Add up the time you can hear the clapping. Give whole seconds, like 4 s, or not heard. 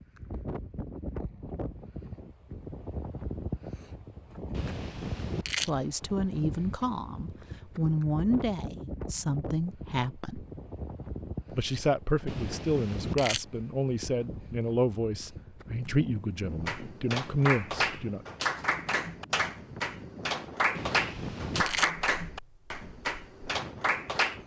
8 s.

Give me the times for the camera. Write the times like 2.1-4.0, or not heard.
4.5-5.7, 12.2-13.4, 20.8-21.9.